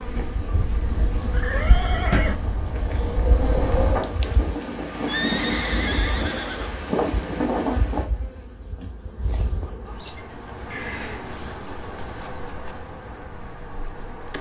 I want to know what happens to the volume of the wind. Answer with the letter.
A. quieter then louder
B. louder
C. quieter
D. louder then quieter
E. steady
B.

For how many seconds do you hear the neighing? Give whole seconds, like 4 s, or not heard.
3 s.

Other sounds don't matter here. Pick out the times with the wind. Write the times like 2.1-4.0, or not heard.
0.0-8.1.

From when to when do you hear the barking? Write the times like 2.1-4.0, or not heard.
not heard.